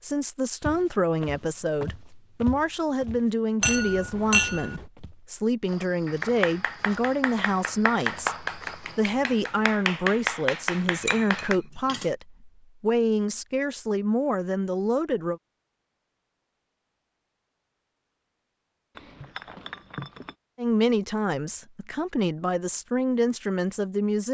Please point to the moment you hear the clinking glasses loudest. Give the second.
4 s.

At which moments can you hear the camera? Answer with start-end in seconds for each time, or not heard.
not heard.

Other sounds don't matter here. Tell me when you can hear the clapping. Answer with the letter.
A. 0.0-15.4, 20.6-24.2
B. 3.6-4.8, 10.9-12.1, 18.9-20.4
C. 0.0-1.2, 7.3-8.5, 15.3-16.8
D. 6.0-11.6
D.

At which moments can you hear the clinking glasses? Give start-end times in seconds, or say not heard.
3.6-4.8, 10.9-12.1, 18.9-20.4.